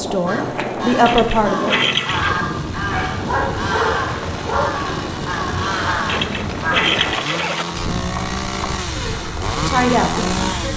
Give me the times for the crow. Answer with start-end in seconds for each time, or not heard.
0.2-7.1.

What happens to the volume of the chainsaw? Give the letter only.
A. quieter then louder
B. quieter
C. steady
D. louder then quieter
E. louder
E.